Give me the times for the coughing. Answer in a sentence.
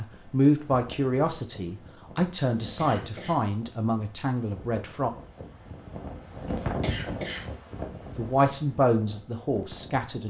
The coughing can be heard from 2.6 to 3.4 s and from 6.5 to 7.5 s.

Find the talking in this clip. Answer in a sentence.
The talking can be heard from 0.0 to 5.1 s and from 8.2 to 10.2 s.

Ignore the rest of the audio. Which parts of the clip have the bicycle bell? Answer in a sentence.
You can't hear the bicycle bell here.